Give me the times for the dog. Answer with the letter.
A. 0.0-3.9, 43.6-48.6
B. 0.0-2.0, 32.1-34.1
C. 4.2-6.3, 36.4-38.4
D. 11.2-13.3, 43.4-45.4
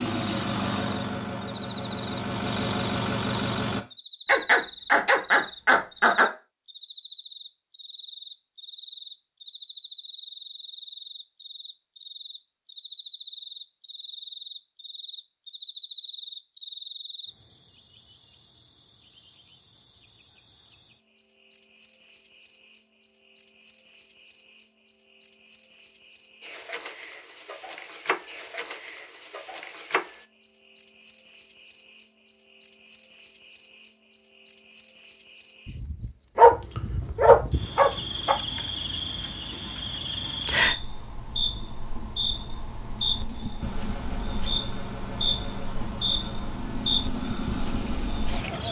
C.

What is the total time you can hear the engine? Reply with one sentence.
The engine can be heard for 9 seconds in total.